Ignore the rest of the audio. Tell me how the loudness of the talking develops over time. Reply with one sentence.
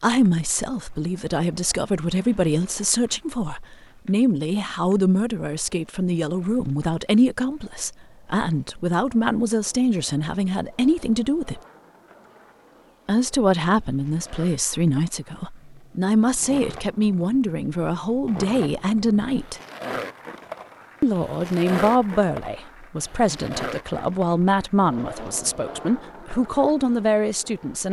The loudness of the talking stays about the same.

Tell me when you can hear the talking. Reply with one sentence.
The talking can be heard from 0.0 to 11.6 s, from 13.1 to 19.6 s and from 21.0 to 27.8 s.